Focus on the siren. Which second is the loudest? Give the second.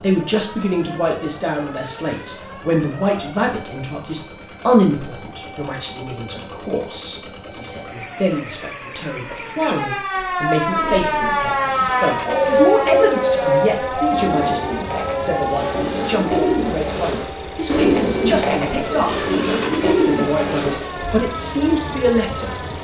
13 s.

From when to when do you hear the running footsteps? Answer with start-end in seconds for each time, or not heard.
not heard.